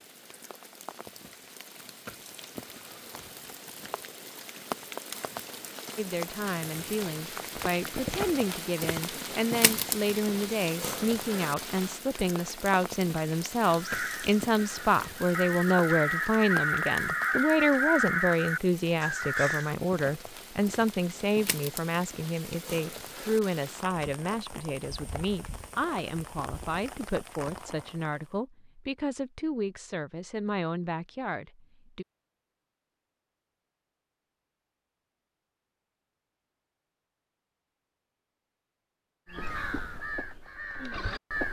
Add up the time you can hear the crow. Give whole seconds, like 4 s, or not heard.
8 s.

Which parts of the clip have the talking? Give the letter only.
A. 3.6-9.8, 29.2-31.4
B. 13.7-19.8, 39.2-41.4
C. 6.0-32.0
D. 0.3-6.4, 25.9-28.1
C.